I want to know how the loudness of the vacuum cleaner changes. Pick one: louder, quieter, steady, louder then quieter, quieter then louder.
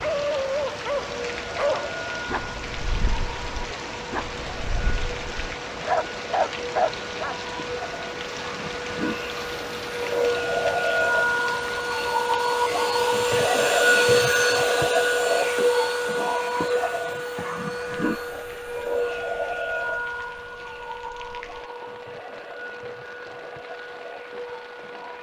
louder then quieter.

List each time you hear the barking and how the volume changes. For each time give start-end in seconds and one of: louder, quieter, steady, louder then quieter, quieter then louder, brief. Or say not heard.
0.0-7.3 quieter then louder.